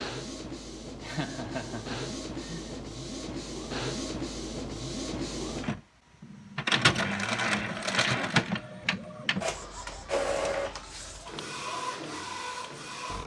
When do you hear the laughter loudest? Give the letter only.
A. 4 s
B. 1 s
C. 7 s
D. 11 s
B.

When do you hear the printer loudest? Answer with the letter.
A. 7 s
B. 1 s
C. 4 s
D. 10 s
A.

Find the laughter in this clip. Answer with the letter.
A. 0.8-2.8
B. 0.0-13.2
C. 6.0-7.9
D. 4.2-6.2
A.